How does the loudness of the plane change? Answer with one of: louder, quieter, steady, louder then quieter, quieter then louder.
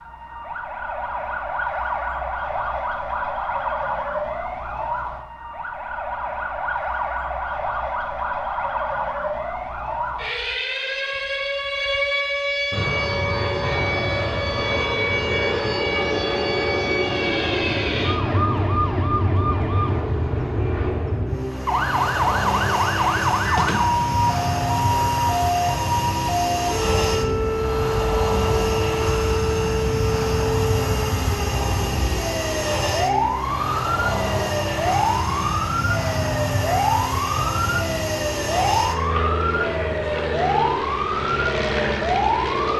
steady.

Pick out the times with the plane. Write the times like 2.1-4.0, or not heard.
12.7-42.7.